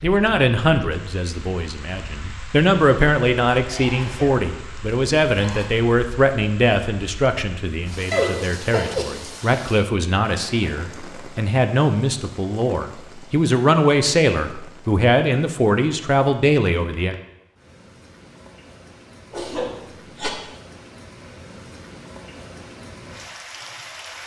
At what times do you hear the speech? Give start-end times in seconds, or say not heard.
0.0-17.1.